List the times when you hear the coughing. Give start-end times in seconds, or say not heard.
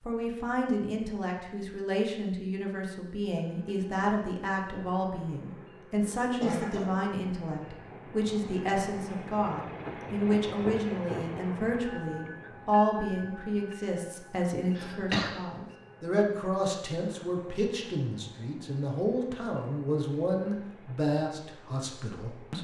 6.0-7.0, 14.8-15.3.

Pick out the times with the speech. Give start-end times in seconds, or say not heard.
0.0-22.6.